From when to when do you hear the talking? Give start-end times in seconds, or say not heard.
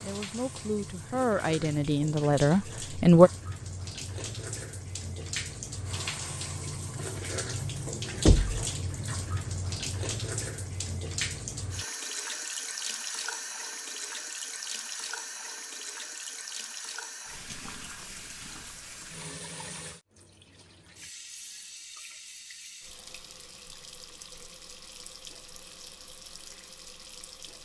0.0-3.3.